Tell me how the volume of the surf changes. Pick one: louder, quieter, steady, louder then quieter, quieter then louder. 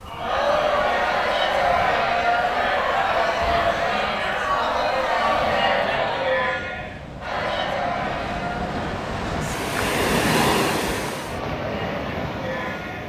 louder.